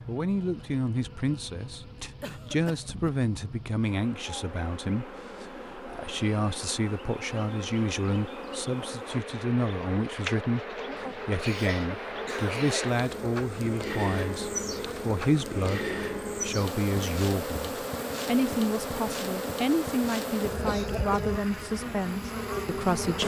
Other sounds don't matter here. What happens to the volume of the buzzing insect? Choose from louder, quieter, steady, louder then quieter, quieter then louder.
louder.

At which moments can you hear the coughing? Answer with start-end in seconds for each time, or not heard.
2.2-3.3, 10.9-12.9, 20.6-21.2.